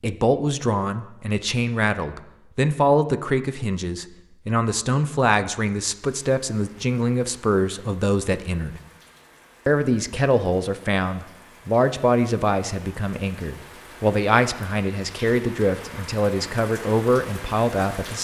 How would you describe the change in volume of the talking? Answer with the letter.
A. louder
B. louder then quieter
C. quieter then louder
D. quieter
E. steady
E.